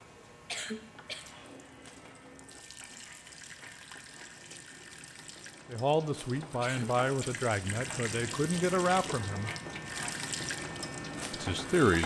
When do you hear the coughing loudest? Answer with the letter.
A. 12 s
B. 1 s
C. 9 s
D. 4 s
B.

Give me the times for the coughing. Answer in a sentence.
The coughing can be heard from 0.5 to 1.2 s and from 6.6 to 7.3 s.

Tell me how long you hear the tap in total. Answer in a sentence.
The tap can be heard for 12 seconds in total.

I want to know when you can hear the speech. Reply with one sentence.
You can hear the speech from 5.7 to 9.5 s and from 11.3 to 12.0 s.